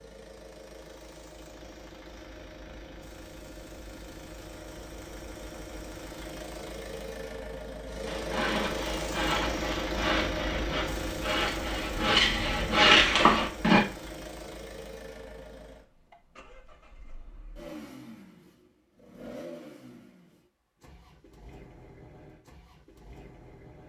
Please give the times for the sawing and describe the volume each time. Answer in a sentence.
You can hear the sawing from 8.1 to 13.8 s, getting louder.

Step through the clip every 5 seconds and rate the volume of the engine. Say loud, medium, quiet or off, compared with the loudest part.
medium, loud, loud, medium, quiet.